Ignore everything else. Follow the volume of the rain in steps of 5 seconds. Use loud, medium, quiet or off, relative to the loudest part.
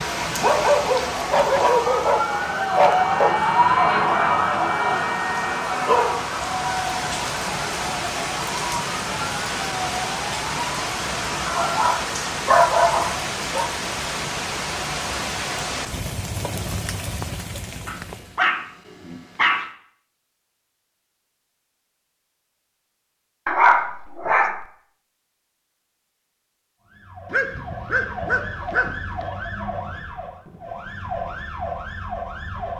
medium, loud, loud, loud, off, off, off.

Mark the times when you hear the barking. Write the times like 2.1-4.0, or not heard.
0.3-3.3, 5.8-6.2, 11.4-13.7, 17.9-19.6, 23.4-24.6, 27.3-29.2.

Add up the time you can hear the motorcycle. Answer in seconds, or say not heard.
not heard.